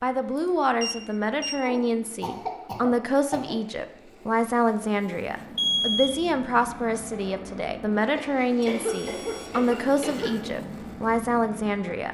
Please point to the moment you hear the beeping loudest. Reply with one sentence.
The loudest moment of the beeping is at 6 seconds.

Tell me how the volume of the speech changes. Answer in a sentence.
The loudness of the speech stays about the same.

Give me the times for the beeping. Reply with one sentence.
The beeping can be heard from 0.8 to 1.6 s, from 5.5 to 6.2 s and from 8.6 to 9.6 s.